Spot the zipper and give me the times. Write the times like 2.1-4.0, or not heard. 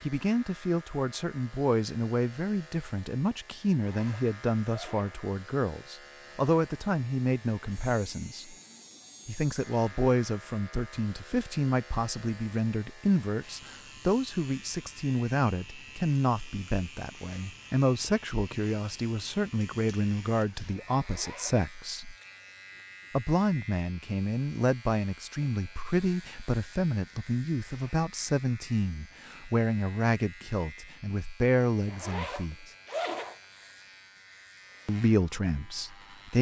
3.9-5.2, 20.9-21.6, 31.9-33.4.